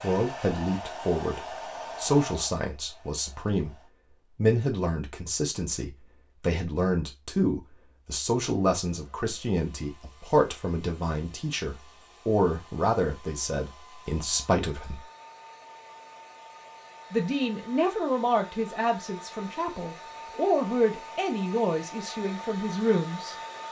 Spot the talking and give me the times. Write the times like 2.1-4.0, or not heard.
0.0-15.1, 17.1-23.4.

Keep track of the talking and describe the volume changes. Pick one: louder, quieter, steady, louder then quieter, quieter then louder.
steady.